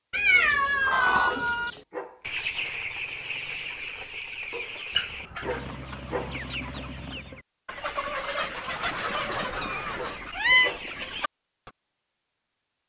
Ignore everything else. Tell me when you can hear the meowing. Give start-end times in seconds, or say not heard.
0.1-1.7, 5.0-5.6, 9.6-10.7.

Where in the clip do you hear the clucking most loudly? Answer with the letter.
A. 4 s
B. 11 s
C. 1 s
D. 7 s
C.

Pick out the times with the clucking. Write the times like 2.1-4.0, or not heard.
0.3-11.7.